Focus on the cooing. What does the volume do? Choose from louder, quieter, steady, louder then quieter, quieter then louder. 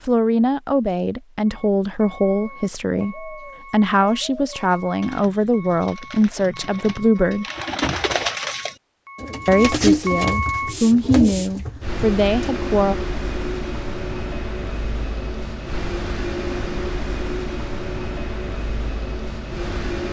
louder.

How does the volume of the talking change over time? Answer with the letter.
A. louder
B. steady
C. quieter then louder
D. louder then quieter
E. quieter
B.